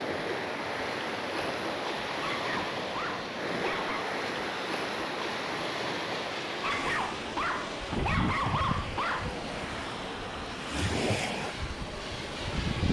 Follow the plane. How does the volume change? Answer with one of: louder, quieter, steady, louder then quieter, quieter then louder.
steady.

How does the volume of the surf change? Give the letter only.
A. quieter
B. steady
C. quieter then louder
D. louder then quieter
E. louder
B.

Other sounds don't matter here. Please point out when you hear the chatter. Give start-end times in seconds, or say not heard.
not heard.